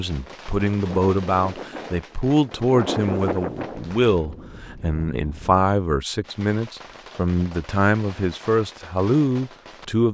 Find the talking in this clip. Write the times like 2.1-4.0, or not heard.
0.0-10.0.